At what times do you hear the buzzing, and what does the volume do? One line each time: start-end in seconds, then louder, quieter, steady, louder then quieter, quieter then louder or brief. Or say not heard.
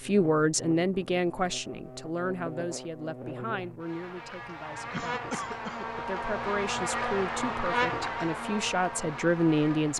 0.0-9.9 louder.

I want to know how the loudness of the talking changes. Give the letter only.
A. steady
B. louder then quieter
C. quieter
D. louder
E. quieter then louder
E.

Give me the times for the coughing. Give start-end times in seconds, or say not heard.
4.9-5.8.